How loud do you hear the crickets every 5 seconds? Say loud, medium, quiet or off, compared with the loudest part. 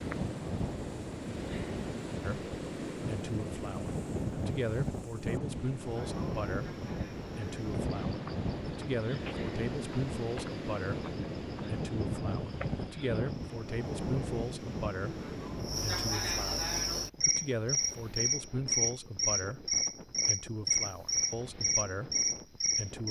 quiet, quiet, quiet, loud, loud.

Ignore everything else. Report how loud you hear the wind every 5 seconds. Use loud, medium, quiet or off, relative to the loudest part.
loud, loud, loud, medium, quiet.